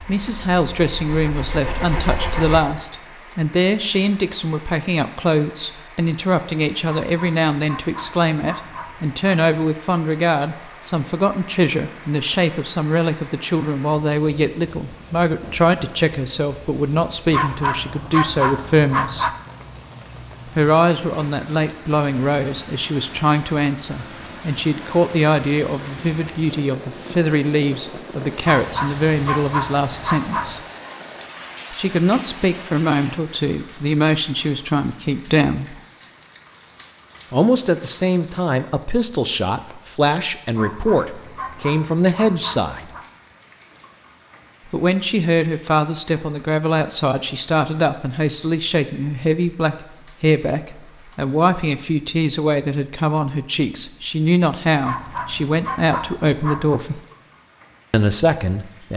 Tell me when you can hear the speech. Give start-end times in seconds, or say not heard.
0.1-19.3, 20.6-30.6, 31.7-35.8, 37.3-42.9, 44.7-57.0, 57.9-58.9.